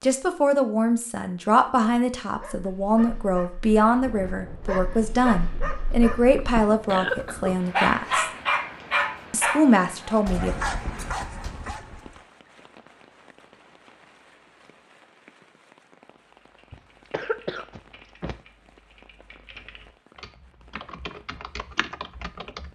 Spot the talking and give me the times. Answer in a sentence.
The talking can be heard from 0.0 to 8.3 s and from 9.3 to 10.6 s.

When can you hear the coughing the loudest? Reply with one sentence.
The loudest moment of the coughing is at 7 seconds.